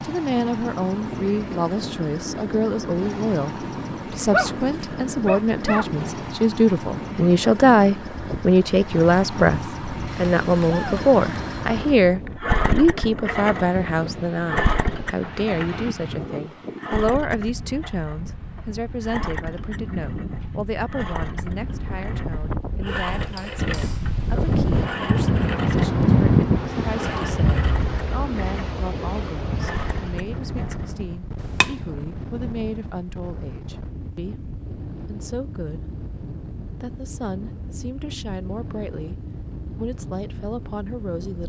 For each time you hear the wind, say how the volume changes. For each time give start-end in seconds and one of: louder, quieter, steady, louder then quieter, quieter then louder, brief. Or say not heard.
0.2-41.4 louder then quieter.